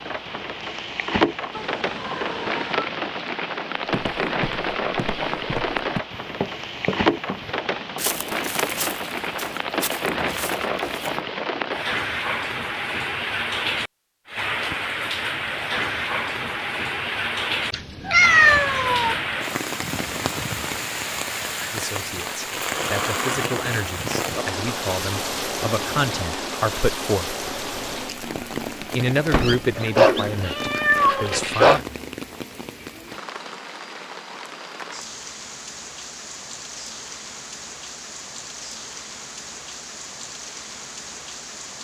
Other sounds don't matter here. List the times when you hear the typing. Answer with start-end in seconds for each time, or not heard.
not heard.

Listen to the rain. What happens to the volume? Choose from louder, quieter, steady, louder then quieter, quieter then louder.
quieter.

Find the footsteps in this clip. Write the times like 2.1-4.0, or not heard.
3.9-11.2.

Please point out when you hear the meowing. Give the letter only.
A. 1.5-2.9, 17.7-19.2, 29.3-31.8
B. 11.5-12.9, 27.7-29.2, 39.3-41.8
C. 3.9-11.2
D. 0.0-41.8
A.